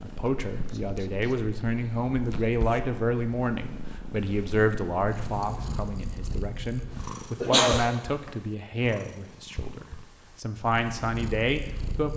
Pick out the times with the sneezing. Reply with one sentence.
The sneezing can be heard from 7.0 to 8.3 s.